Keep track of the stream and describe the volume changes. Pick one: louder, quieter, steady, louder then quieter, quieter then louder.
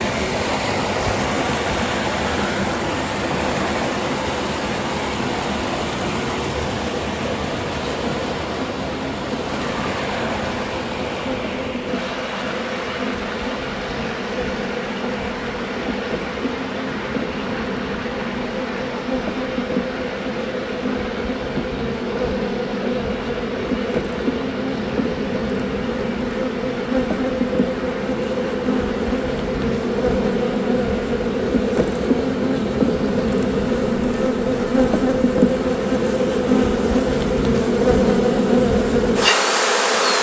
quieter.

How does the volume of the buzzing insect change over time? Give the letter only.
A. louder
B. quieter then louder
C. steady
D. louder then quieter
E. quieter
A.